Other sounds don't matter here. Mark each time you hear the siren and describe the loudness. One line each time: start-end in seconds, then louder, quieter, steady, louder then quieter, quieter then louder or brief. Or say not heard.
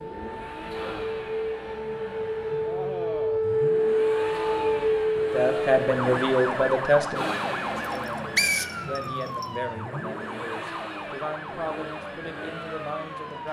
0.0-13.4 louder then quieter.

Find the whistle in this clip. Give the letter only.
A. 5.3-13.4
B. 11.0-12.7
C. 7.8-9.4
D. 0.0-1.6
C.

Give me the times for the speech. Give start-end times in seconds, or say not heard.
5.3-13.4.